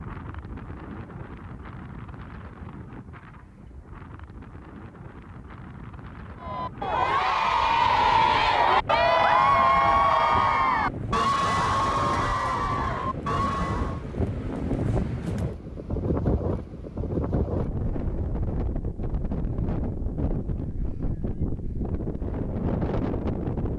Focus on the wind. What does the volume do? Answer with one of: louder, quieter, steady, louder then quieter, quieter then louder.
louder.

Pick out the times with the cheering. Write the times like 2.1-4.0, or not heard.
6.4-14.0.